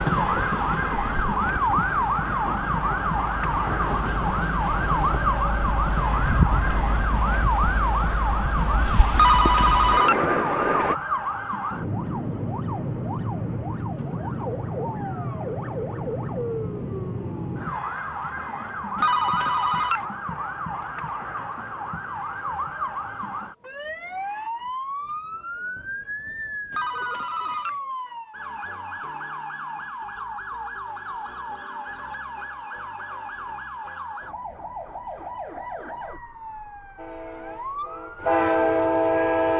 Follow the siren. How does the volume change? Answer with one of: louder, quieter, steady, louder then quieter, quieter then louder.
quieter.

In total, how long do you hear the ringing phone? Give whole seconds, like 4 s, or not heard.
3 s.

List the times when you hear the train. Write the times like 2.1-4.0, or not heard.
0.0-10.9, 37.0-39.5.